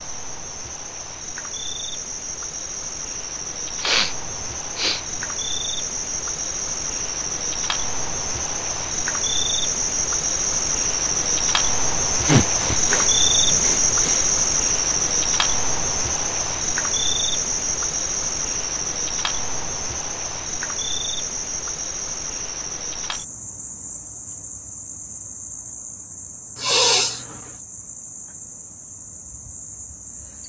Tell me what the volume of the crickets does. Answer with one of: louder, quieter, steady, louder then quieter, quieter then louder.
louder then quieter.